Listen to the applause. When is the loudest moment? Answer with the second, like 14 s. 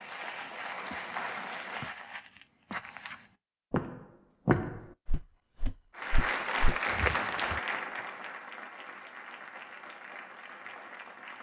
7 s.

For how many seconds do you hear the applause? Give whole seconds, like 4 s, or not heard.
7 s.